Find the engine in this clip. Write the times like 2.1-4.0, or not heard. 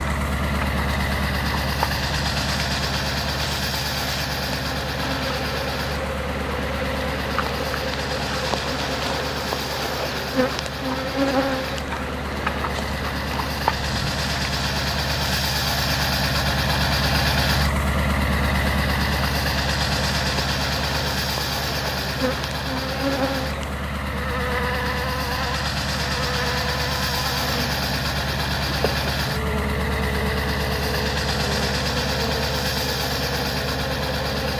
0.0-34.5.